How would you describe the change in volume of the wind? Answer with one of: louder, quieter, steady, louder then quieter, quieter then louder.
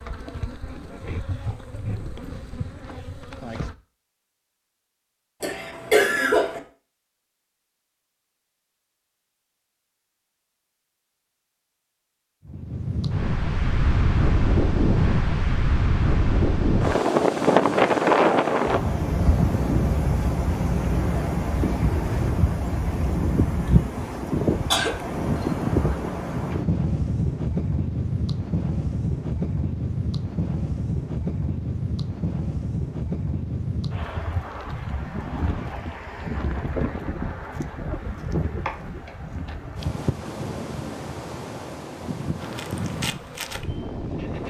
quieter.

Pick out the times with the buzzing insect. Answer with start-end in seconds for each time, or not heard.
0.0-3.8, 42.4-44.4.